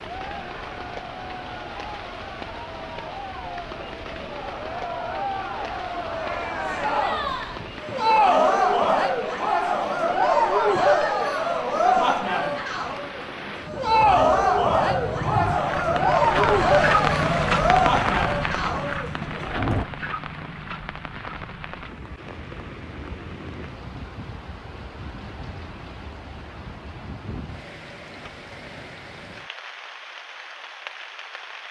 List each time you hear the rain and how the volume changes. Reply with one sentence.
The rain can be heard from 0.0 to 31.6 s, getting louder then quieter.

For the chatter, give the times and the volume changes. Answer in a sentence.
The chatter can be heard from 0.0 to 19.9 s, getting louder.